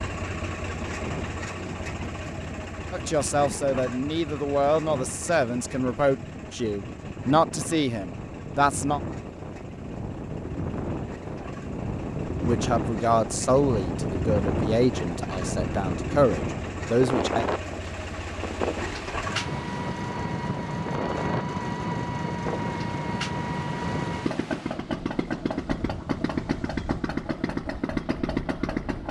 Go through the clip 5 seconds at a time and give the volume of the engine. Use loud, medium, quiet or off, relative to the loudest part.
medium, quiet, quiet, medium, loud, loud.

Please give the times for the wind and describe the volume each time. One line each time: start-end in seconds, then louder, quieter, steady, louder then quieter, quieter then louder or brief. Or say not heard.
0.0-29.0 louder then quieter.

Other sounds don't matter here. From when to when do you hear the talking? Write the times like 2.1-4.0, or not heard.
2.9-9.0, 12.4-17.4.